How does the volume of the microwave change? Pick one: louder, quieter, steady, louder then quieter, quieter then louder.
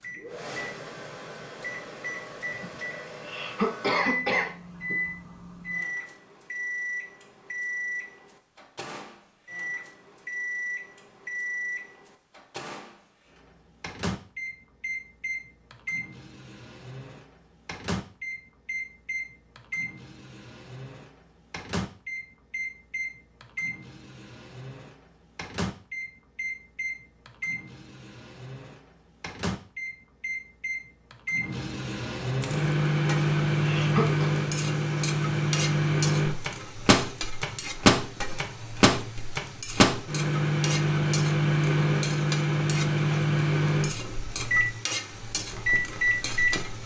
louder.